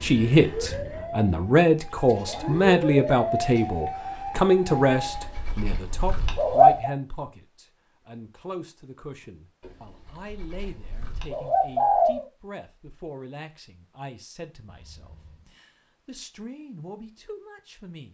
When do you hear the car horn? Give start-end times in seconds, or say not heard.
14.7-15.5.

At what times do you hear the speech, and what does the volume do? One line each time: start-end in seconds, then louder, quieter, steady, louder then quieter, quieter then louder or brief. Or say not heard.
0.0-18.0 quieter.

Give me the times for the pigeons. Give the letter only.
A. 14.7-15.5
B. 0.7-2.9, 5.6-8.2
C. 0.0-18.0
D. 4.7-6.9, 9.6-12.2
D.